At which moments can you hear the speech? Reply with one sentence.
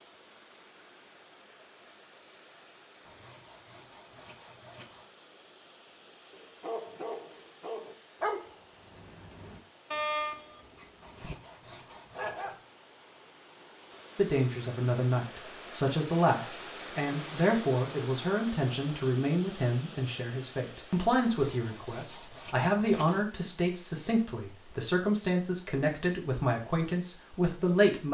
The speech can be heard from 14.2 to 28.0 s.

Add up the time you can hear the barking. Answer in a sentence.
The barking can be heard for 6 seconds in total.